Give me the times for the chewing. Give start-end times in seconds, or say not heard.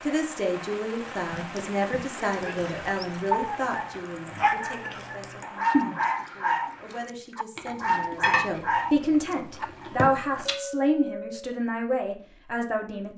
1.1-10.6.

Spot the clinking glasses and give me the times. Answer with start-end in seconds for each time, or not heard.
10.4-11.6.